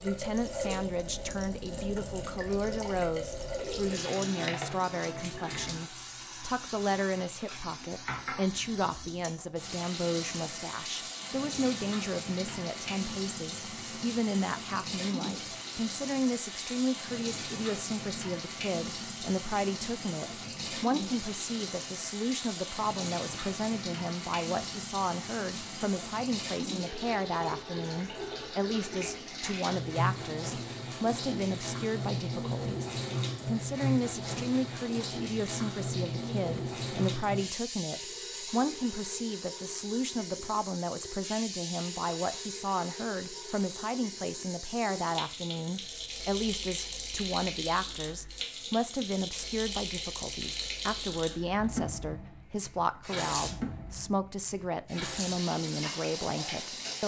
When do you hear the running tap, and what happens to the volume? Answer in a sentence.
You can hear the running tap from 0.0 to 57.0 s, at a steady volume.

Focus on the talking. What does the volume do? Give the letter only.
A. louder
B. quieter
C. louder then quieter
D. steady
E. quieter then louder
D.